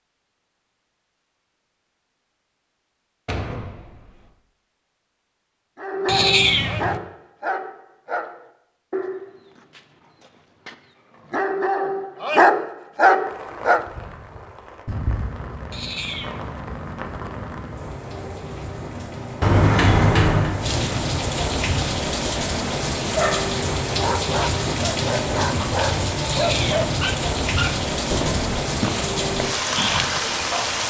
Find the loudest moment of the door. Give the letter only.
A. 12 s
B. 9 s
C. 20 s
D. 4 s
C.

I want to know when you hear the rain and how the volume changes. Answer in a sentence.
You can hear the rain from 13.2 to 30.8 s, getting louder.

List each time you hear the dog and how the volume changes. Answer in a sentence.
The dog can be heard from 5.8 to 13.8 s, getting quieter then louder; and from 23.1 to 30.8 s, at a steady volume.